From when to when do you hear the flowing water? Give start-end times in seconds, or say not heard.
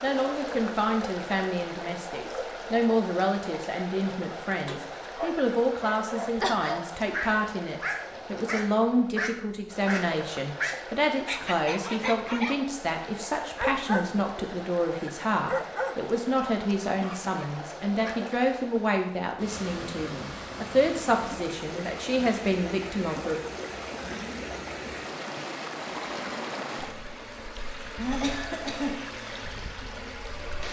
0.0-30.6.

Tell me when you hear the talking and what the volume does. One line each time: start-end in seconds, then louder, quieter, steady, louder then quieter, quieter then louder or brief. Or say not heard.
0.0-23.4 steady.